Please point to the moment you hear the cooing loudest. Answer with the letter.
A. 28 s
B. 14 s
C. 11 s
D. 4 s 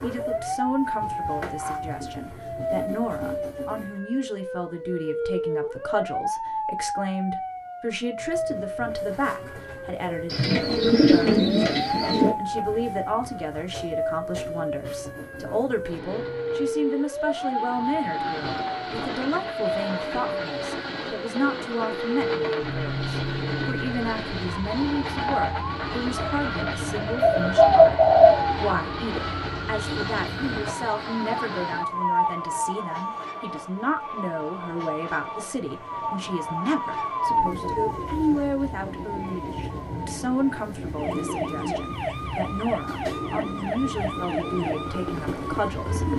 A.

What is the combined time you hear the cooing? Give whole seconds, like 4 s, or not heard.
4 s.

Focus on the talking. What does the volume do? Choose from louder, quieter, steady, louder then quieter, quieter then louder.
steady.